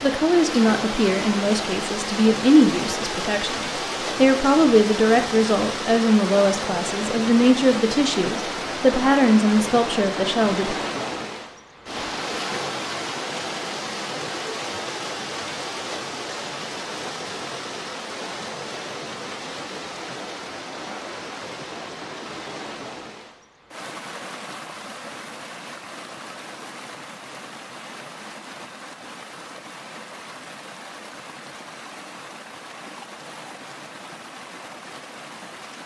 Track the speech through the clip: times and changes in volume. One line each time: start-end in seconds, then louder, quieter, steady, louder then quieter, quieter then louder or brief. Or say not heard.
0.0-10.8 steady.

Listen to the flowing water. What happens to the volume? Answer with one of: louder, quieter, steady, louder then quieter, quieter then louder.
quieter.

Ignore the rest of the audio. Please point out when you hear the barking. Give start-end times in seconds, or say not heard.
not heard.